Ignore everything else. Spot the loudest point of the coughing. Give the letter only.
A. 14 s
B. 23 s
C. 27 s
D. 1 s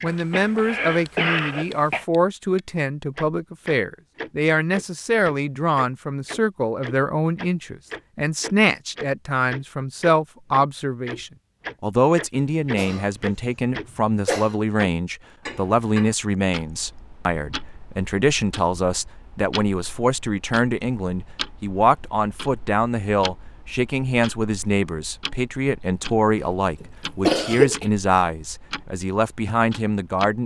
C.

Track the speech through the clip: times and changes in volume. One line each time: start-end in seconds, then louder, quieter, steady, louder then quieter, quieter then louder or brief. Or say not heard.
0.0-30.4 steady.